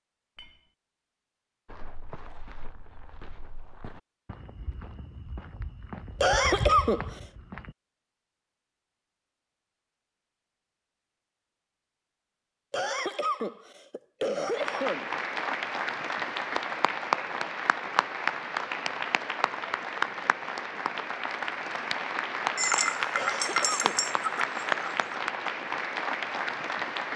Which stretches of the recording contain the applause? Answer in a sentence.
You can hear the applause from 14.5 to 27.1 s.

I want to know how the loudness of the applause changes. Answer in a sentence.
The loudness of the applause stays about the same.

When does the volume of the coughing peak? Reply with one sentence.
The loudest moment of the coughing is at 7 seconds.